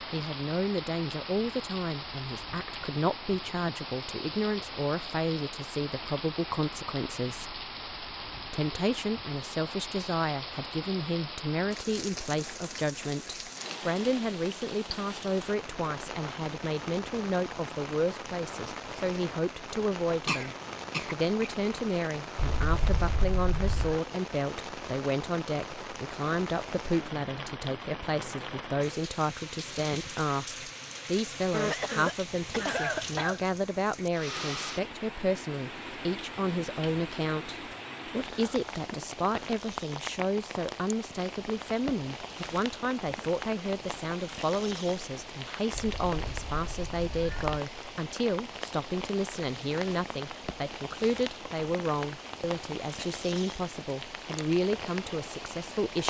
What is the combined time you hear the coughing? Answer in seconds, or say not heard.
3 s.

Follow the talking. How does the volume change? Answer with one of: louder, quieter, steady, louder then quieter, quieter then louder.
steady.